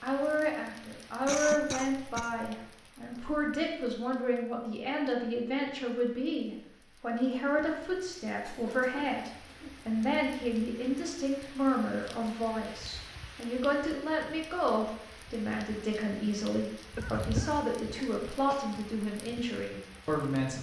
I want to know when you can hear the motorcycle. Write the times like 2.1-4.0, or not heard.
not heard.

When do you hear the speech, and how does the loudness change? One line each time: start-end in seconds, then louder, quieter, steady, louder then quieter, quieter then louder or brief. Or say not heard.
0.0-20.5 steady.